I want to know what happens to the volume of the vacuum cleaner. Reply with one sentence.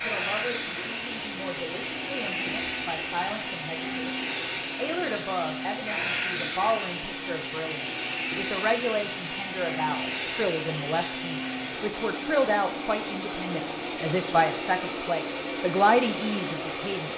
The loudness of the vacuum cleaner stays about the same.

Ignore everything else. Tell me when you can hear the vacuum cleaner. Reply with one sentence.
You can hear the vacuum cleaner from 0.0 to 17.1 s.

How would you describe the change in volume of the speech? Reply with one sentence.
The loudness of the speech goes up.